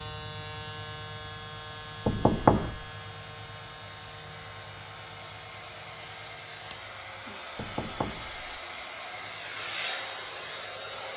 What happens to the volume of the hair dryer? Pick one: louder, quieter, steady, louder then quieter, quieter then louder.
louder.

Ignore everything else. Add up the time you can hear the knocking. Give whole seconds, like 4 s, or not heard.
2 s.